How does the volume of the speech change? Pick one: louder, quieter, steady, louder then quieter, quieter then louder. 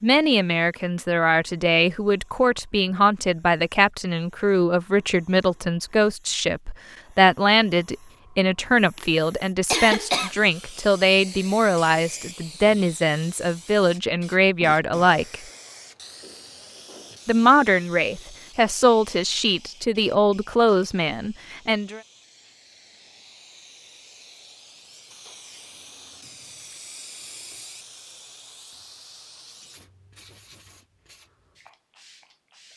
steady.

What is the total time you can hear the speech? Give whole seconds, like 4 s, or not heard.
20 s.